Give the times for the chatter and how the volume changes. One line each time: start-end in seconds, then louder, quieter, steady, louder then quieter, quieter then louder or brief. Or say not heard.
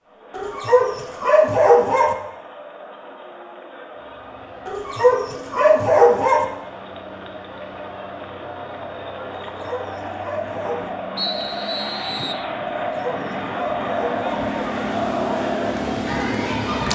0.0-16.8 louder.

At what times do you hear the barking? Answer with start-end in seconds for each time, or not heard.
0.3-2.1, 4.7-6.5, 9.4-10.9, 12.7-14.4.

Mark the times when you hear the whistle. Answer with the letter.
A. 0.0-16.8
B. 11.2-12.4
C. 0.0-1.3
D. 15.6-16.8
B.